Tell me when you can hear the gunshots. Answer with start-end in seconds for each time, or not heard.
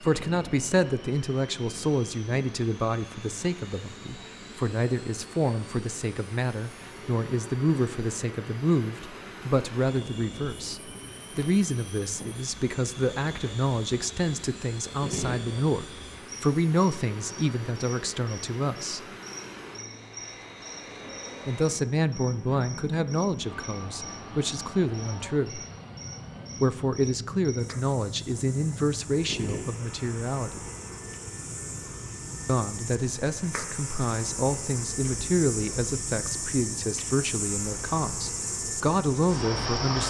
15.0-15.6, 29.2-29.9.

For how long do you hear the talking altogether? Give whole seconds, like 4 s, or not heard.
35 s.